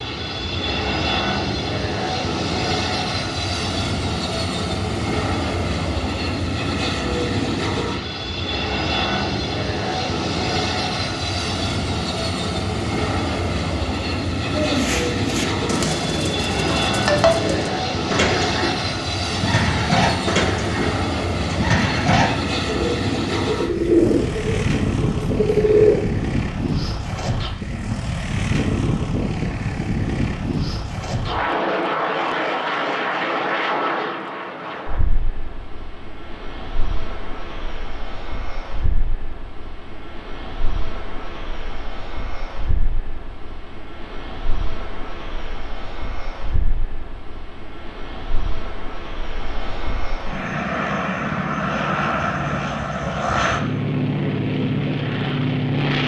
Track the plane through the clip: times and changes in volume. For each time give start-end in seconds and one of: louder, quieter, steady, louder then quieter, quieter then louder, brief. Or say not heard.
0.0-56.0 quieter then louder.